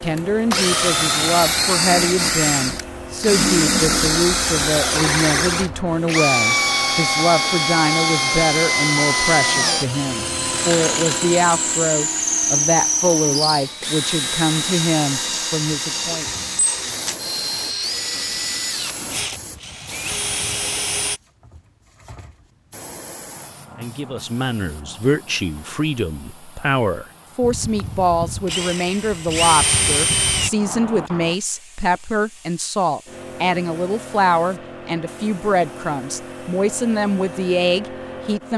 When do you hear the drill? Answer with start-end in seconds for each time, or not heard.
0.0-21.2, 27.4-30.5.